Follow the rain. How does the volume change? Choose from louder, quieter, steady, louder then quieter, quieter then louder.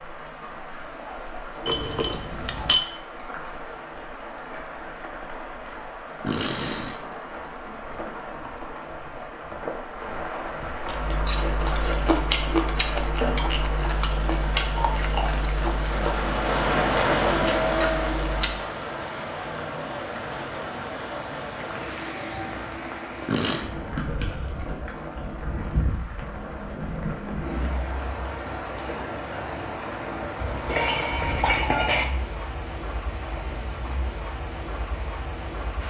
louder then quieter.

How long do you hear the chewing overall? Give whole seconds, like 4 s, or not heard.
8 s.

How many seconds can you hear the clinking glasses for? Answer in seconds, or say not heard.
3 s.